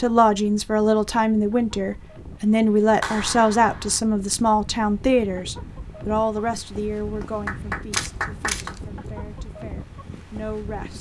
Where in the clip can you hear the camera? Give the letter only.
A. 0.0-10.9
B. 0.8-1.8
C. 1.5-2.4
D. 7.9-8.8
D.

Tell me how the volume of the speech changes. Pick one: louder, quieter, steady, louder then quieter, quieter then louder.
quieter.